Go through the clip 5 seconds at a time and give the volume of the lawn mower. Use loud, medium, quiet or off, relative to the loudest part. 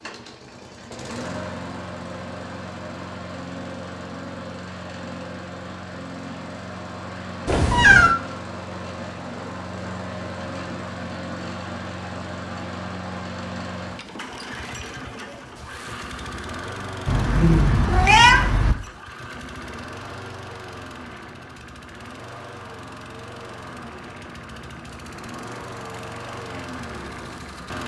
loud, loud, loud, loud, medium, loud.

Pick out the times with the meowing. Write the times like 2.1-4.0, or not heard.
7.5-8.2, 17.1-18.8.